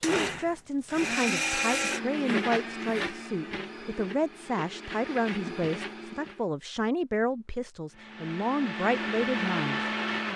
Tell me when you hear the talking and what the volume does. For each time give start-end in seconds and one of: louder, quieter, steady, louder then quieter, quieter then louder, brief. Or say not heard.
0.0-9.9 steady.